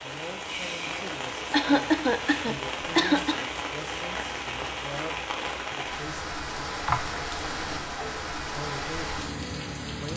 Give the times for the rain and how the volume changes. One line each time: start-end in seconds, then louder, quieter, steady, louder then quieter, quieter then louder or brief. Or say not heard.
0.0-10.1 steady.